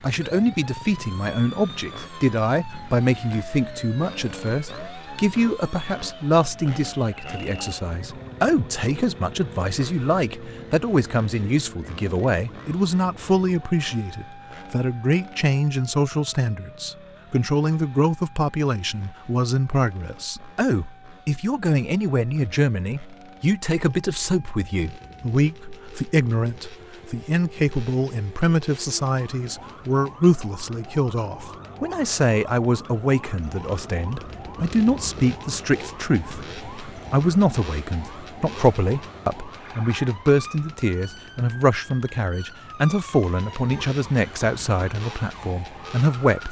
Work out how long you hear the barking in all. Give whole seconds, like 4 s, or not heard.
not heard.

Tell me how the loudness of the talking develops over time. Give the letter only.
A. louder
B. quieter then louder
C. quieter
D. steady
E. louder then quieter
D.